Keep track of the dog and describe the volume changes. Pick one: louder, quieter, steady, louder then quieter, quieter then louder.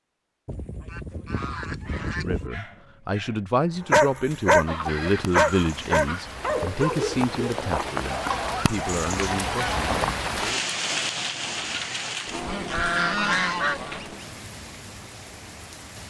louder then quieter.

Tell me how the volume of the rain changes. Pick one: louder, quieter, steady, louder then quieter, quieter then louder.
louder then quieter.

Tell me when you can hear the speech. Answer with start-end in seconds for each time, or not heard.
2.1-10.7.